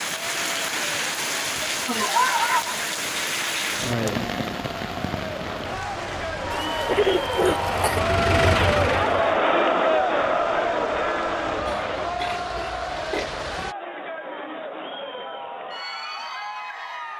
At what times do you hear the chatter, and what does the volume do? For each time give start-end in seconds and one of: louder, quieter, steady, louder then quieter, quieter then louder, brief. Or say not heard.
0.1-17.1 louder then quieter.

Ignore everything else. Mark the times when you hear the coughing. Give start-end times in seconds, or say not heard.
1.8-2.8, 6.5-8.0, 11.7-13.3.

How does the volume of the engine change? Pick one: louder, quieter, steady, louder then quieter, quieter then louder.
louder.